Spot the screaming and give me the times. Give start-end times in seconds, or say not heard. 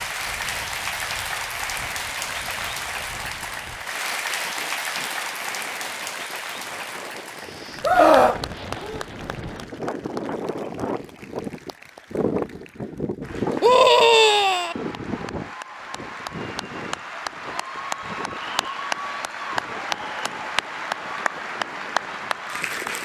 7.8-9.1, 13.6-14.8.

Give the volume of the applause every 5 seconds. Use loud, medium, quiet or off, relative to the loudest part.
loud, medium, quiet, loud, loud.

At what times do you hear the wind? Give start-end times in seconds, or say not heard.
0.0-22.9.